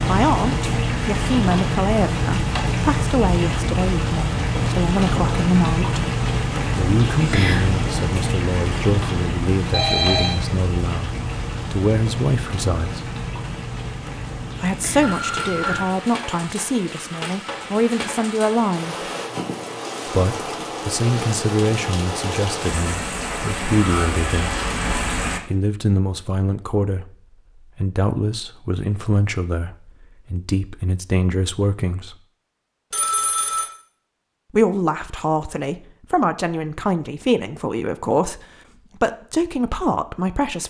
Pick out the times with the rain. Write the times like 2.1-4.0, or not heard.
0.0-25.4.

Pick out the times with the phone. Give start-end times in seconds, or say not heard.
9.7-10.3, 15.0-15.9, 32.9-33.7.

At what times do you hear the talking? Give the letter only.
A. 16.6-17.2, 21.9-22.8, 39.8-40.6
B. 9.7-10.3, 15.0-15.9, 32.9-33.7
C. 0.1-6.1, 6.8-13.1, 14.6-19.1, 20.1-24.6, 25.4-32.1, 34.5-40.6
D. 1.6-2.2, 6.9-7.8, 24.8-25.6
C.